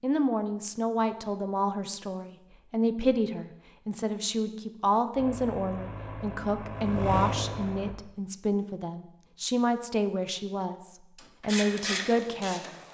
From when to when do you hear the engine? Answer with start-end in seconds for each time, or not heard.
5.2-8.0.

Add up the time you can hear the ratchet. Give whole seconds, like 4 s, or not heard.
2 s.